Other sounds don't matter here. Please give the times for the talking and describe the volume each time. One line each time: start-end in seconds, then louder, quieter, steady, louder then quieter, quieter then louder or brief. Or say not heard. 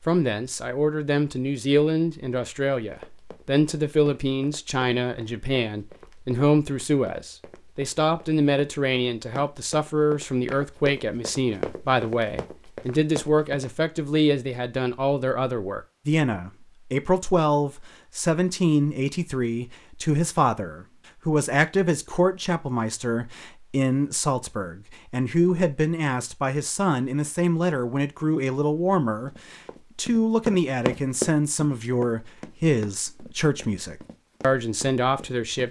0.0-35.6 steady.